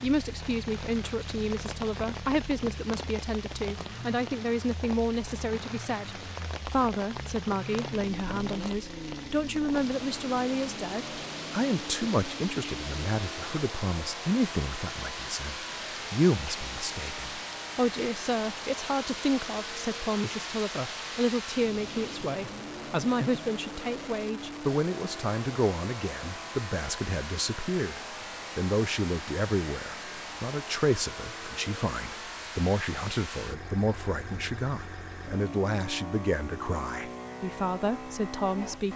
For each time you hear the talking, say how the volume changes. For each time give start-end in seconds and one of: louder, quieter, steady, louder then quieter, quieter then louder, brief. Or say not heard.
0.0-38.9 steady.